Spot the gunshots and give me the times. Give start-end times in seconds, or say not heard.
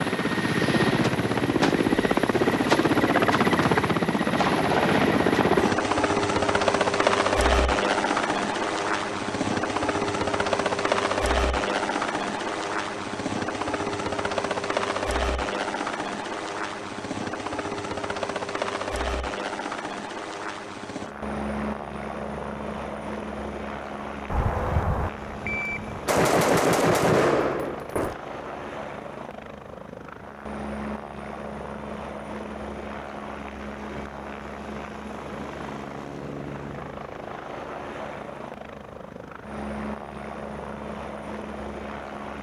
24.3-28.1.